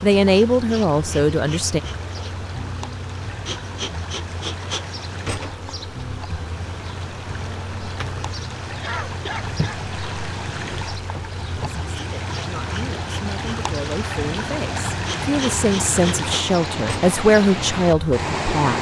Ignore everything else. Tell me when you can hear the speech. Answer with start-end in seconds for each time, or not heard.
0.0-1.8, 11.9-18.7.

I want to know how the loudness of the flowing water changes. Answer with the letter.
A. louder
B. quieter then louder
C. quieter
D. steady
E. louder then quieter
A.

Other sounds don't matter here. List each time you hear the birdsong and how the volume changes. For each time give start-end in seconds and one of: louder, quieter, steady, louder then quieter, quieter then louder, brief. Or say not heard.
not heard.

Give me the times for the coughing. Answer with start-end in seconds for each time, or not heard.
8.8-9.8.